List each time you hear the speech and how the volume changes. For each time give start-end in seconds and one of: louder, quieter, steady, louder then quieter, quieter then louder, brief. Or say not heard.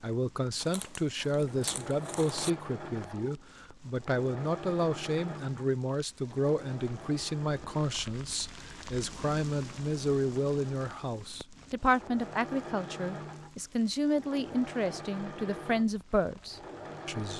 0.0-17.3 steady.